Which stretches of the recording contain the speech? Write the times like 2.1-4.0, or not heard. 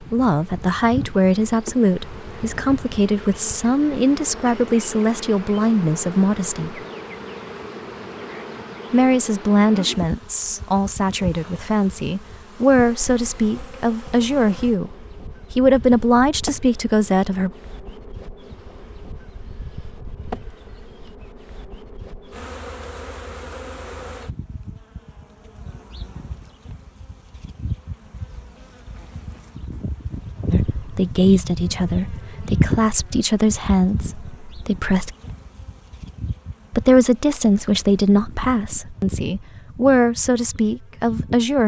0.1-6.8, 8.9-17.5, 30.5-35.1, 36.7-41.6.